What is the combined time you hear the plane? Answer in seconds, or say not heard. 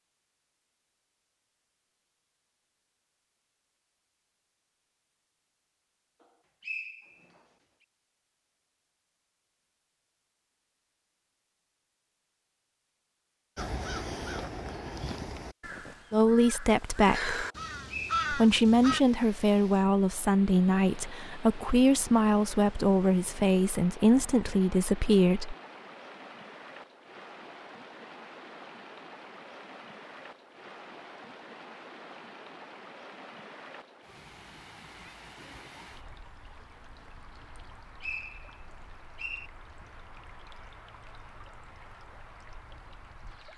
not heard.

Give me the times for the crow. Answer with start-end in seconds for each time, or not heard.
13.6-19.0.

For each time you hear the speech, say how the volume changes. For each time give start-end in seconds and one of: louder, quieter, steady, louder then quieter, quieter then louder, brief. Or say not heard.
16.1-17.4 brief
18.3-25.6 steady.